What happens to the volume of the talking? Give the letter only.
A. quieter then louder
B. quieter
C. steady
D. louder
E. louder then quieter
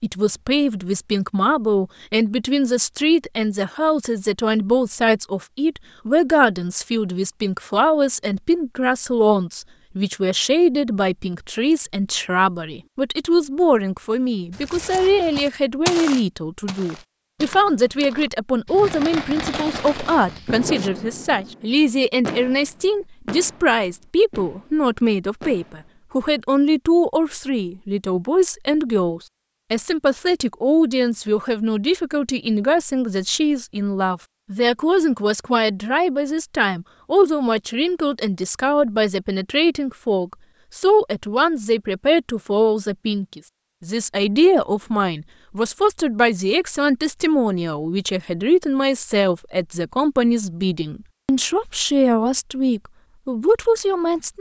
C.